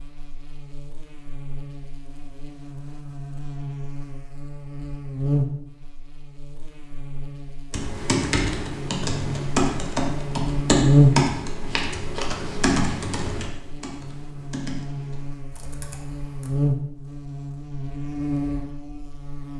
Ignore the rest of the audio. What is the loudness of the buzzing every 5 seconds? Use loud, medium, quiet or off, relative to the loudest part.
quiet, medium, loud, medium.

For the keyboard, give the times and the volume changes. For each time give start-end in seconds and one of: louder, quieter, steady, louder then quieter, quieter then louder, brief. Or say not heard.
7.7-16.6 quieter.